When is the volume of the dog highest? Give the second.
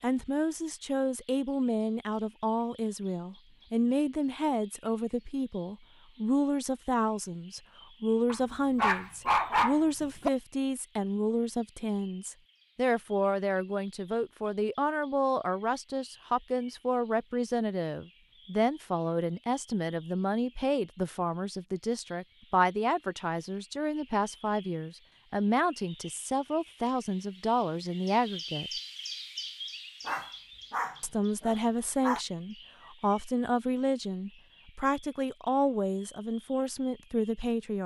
9 s.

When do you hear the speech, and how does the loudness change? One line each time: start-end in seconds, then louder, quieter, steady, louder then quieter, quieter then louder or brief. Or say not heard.
0.0-28.7 steady
31.0-37.8 steady.